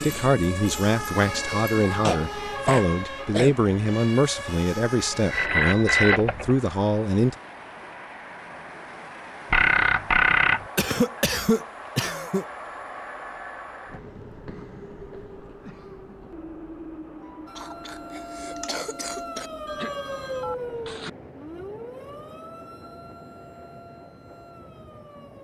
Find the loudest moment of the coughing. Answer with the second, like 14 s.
11 s.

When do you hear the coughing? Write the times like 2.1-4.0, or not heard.
2.0-3.5, 10.8-12.4, 17.6-19.5.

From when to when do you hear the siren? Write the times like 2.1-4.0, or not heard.
0.0-5.5, 17.4-25.4.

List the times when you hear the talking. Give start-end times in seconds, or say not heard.
0.0-7.3.